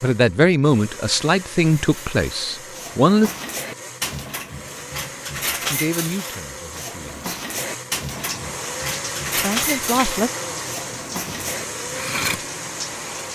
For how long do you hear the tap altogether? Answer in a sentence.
You can hear the tap for 5 seconds altogether.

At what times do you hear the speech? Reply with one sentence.
You can hear the speech from 0.0 to 3.3 s, from 5.7 to 7.2 s and from 9.3 to 10.3 s.